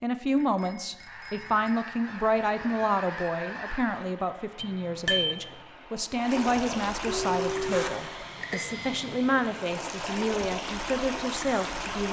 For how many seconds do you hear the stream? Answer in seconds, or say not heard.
10 s.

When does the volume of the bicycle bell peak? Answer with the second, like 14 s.
5 s.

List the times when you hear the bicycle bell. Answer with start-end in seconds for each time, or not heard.
0.3-1.8, 4.6-5.4, 8.4-8.9.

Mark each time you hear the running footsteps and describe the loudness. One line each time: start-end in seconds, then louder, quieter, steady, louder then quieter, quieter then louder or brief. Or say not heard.
not heard.